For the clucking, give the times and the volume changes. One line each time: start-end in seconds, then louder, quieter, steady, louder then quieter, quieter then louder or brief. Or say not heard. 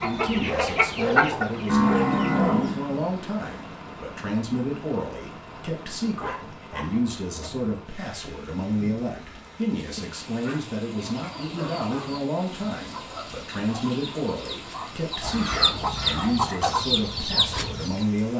0.0-2.4 brief
10.9-18.1 louder.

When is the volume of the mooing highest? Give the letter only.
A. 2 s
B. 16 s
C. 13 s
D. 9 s
A.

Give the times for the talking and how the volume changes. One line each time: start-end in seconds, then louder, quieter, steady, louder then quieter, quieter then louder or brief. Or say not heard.
0.0-18.3 steady.